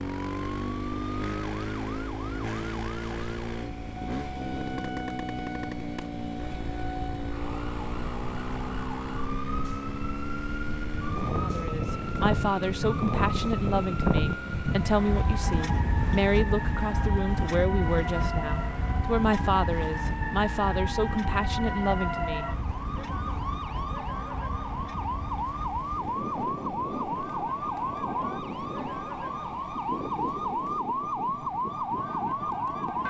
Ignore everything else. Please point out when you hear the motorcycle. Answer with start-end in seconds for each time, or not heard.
0.0-33.0.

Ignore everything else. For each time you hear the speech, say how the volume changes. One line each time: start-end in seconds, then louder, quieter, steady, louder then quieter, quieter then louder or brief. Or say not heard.
11.4-22.5 steady.